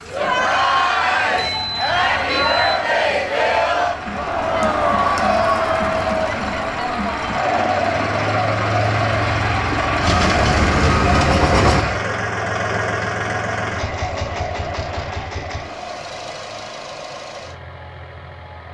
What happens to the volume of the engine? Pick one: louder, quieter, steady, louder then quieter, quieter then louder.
louder then quieter.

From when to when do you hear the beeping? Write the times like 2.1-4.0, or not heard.
1.4-2.8, 10.0-11.8.